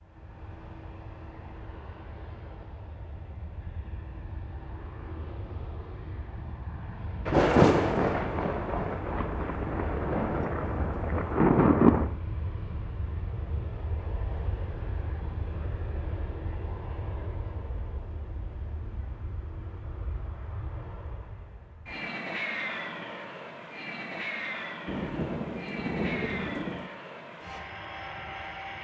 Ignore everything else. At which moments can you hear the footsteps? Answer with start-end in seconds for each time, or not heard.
not heard.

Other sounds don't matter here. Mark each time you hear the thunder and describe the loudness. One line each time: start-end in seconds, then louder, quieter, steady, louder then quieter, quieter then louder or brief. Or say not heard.
7.2-12.1 quieter then louder
24.9-26.9 brief.